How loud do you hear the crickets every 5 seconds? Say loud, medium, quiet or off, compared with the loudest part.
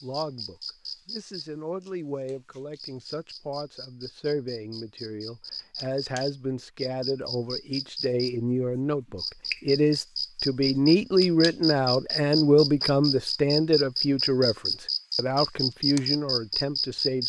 quiet, medium, loud, loud.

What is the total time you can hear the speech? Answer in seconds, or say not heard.
17 s.